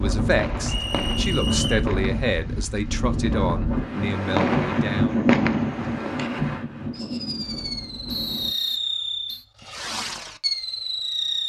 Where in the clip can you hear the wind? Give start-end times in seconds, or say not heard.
0.0-8.5.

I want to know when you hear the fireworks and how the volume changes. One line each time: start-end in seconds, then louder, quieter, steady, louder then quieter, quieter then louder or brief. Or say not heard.
0.2-2.8 brief
4.2-11.4 quieter then louder.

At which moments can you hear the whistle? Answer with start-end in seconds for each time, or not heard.
0.7-1.9, 8.1-9.4.